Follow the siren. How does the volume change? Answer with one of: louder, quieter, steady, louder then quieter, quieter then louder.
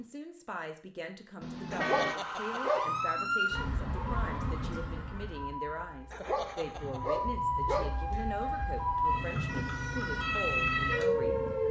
quieter then louder.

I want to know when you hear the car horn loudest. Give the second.
2 s.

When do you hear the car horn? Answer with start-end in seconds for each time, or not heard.
1.4-2.2, 6.8-7.8.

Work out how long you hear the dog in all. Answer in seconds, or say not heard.
3 s.